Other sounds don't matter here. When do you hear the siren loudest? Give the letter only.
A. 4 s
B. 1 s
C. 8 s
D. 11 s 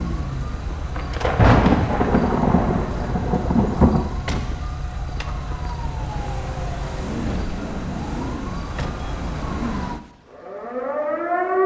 D.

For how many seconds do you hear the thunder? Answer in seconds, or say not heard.
3 s.